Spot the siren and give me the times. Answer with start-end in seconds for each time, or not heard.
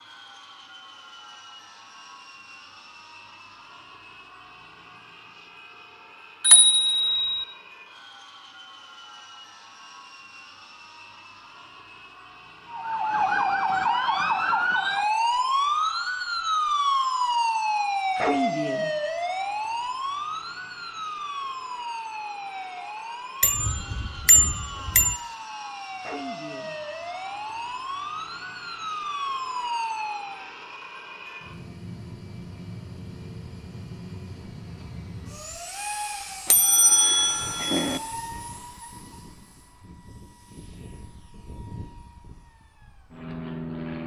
12.7-30.4.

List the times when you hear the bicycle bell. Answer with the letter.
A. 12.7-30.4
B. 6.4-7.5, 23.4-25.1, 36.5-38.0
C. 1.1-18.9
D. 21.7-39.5
B.